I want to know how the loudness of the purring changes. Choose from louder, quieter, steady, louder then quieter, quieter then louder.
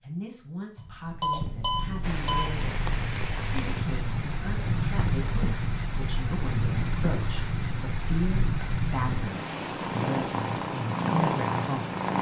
louder.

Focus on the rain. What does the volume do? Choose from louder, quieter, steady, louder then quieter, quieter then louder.
steady.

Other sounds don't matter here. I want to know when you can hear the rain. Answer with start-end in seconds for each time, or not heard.
2.0-12.1.